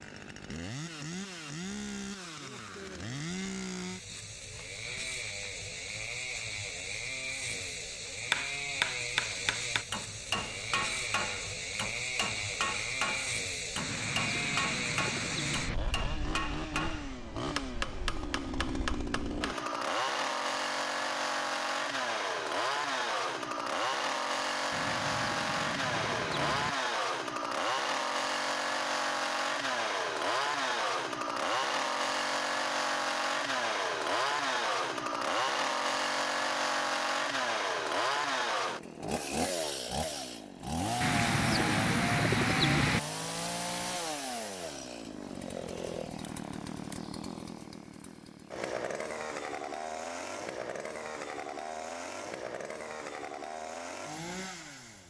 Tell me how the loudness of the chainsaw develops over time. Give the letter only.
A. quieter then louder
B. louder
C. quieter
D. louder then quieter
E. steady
D.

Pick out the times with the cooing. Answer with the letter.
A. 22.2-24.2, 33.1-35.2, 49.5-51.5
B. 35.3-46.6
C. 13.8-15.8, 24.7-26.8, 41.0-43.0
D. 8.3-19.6
C.